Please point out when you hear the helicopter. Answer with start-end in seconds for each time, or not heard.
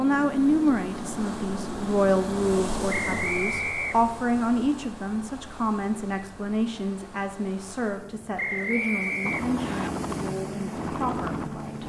0.0-3.2, 9.2-11.8.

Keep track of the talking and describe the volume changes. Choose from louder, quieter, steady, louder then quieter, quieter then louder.
quieter.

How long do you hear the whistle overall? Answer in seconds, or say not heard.
3 s.